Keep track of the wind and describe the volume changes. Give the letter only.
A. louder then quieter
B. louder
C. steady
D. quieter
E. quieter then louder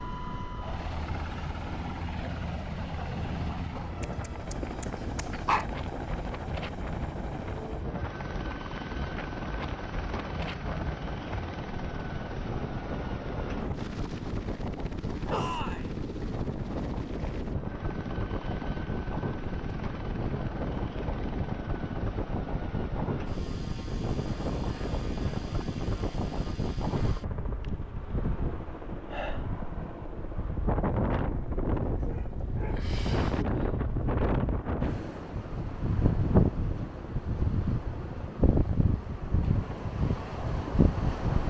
B.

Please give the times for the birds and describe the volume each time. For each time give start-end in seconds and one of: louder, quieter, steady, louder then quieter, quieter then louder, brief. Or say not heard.
not heard.